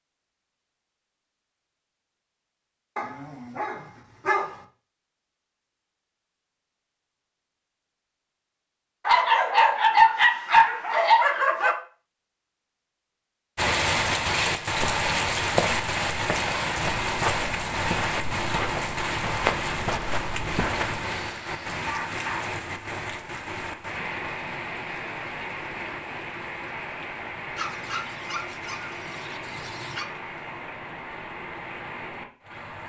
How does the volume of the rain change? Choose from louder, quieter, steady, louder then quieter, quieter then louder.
quieter.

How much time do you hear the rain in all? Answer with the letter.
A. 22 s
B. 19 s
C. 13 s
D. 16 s
B.